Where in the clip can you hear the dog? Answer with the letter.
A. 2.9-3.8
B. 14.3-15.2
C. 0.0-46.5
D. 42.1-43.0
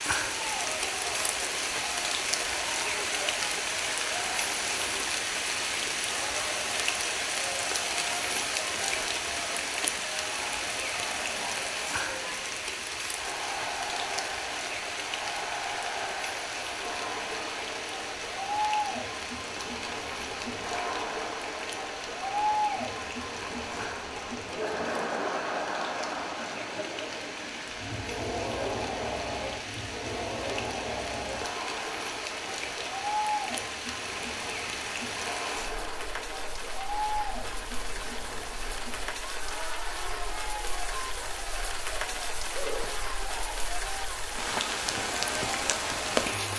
D.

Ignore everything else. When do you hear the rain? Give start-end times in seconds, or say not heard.
0.0-46.5.